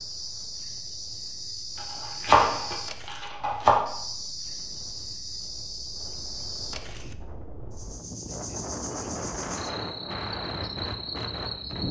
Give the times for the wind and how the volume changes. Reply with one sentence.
The wind can be heard from 0.0 to 11.8 s, getting louder.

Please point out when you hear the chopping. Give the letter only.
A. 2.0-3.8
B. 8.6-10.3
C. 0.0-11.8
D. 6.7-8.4
A.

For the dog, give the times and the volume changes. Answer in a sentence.
You can't hear the dog here.